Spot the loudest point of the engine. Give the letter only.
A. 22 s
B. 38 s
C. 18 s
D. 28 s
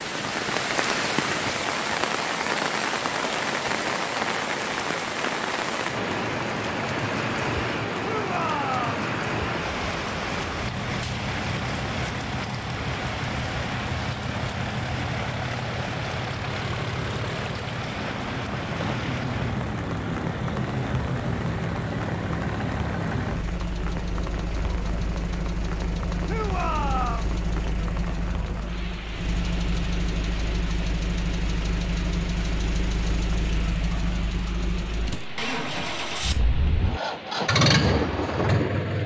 B.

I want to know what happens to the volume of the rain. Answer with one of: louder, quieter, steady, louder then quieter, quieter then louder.
quieter.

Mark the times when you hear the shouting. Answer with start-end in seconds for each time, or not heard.
8.0-9.1, 26.2-27.4.